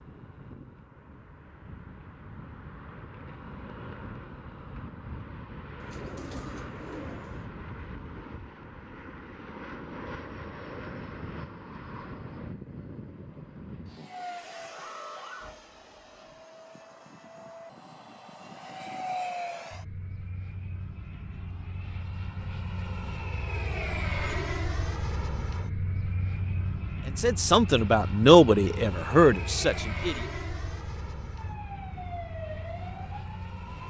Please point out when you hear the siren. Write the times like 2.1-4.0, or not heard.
14.7-16.2, 31.4-33.8.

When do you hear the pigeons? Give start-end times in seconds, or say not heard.
5.8-7.5.